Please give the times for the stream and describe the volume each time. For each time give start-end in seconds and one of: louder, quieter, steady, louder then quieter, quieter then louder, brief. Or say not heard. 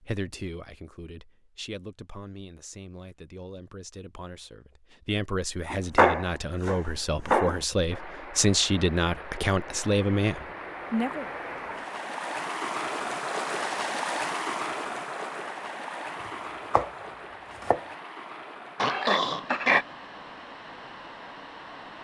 7.9-21.9 louder then quieter.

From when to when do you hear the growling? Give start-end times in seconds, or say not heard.
18.8-19.9.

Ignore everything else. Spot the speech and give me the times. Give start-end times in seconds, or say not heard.
0.0-11.2.